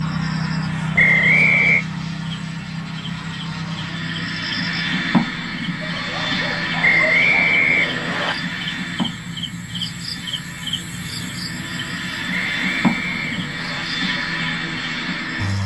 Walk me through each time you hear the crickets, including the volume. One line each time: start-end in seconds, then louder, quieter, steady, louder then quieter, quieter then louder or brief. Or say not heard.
0.0-15.6 quieter.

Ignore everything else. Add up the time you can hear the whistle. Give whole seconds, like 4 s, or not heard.
4 s.